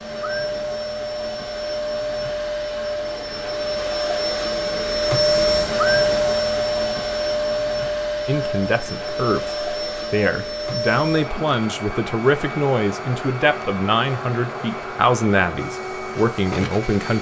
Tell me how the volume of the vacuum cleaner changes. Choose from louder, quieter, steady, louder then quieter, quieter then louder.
louder then quieter.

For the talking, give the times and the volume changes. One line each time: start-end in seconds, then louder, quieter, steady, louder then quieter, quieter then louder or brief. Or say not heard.
8.2-17.1 steady.